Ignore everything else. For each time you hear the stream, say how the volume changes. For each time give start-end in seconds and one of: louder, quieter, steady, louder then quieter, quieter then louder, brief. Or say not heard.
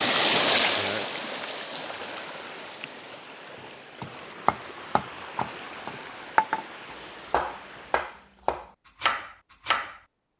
0.0-8.4 quieter.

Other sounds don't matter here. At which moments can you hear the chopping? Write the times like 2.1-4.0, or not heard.
3.5-10.0.